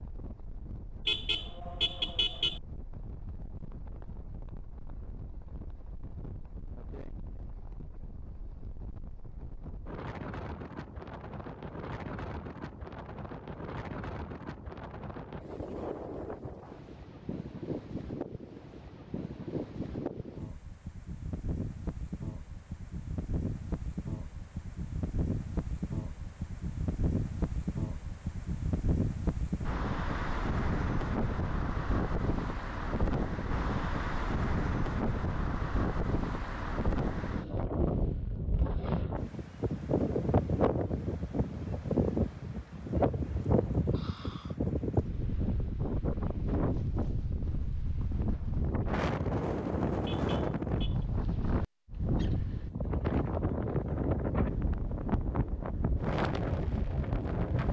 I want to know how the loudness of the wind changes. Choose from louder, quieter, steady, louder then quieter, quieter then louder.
louder.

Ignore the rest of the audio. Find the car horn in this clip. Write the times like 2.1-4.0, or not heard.
1.1-2.6, 50.0-51.0.